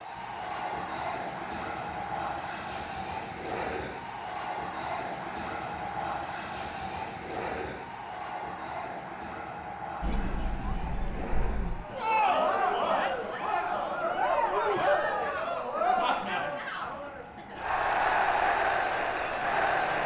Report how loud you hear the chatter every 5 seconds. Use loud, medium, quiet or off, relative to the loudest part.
off, off, loud, loud.